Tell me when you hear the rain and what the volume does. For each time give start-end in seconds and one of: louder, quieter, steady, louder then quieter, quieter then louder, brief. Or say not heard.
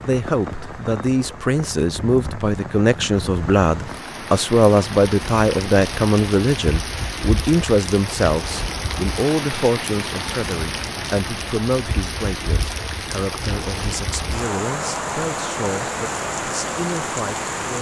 0.0-17.7 louder.